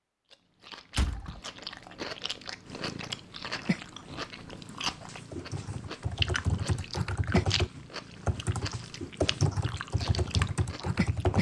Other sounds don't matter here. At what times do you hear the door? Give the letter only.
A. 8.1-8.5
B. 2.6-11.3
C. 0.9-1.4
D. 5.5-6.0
C.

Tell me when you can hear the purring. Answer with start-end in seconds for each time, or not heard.
2.6-11.3.